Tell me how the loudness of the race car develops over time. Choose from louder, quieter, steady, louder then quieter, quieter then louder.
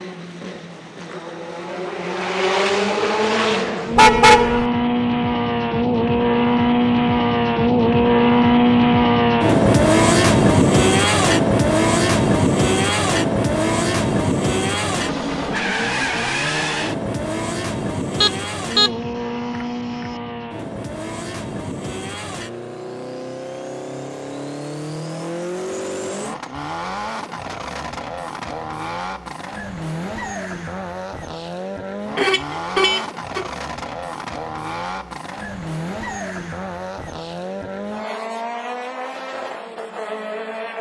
quieter.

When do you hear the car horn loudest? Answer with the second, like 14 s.
4 s.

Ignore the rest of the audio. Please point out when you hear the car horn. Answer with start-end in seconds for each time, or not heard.
4.0-4.7, 18.2-18.9, 32.1-33.5.